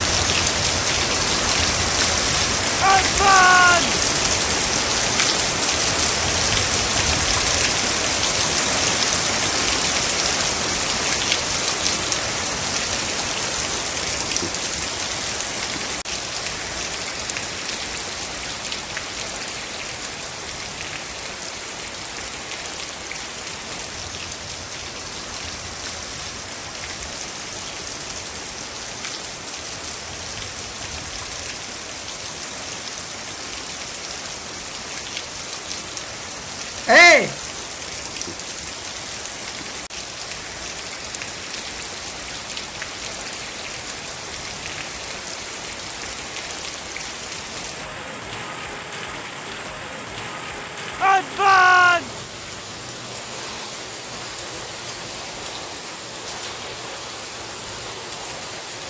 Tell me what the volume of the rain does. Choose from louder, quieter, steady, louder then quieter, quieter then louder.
quieter.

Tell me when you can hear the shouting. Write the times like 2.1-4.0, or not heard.
2.8-4.0, 36.9-37.4, 51.0-52.0.